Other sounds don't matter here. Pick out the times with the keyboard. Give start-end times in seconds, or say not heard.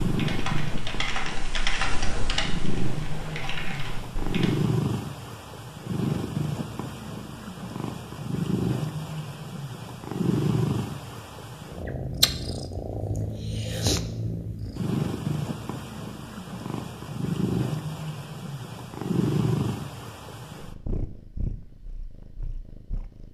0.0-4.5.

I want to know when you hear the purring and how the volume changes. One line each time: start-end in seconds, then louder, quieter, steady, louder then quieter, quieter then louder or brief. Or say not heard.
0.0-23.2 steady.